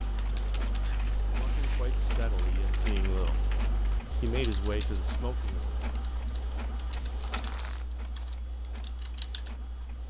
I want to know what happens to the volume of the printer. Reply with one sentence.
The volume of the printer goes down.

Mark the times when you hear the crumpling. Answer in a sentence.
The crumpling can be heard from 0.8 to 2.0 s and from 7.3 to 8.3 s.